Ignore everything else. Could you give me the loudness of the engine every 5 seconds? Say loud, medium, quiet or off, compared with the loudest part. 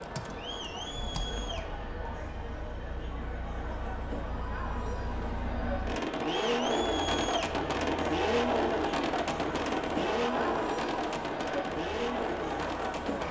quiet, loud, loud.